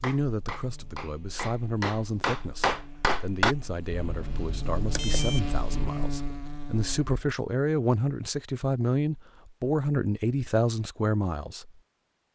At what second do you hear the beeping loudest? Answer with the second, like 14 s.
5 s.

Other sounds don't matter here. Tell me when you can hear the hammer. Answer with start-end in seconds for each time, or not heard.
0.0-3.5.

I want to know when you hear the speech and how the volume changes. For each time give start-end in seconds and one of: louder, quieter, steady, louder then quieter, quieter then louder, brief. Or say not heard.
0.0-11.7 louder.